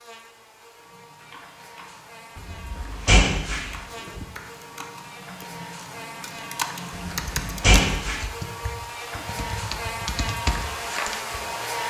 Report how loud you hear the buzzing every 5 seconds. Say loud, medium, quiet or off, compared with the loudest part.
quiet, medium, loud.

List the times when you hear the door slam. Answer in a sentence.
You can hear the door slam from 2.4 to 4.2 s and from 7.1 to 8.3 s.